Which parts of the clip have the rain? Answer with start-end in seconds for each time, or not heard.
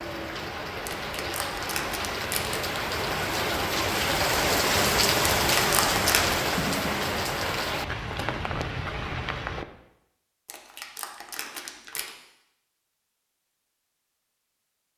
0.0-9.7.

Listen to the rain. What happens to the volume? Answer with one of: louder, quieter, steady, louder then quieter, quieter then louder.
louder then quieter.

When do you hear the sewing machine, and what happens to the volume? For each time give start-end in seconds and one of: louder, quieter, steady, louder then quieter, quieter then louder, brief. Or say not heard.
not heard.